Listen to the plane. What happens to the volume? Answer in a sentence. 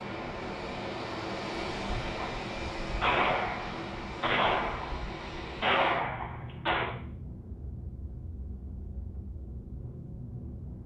The volume of the plane goes down.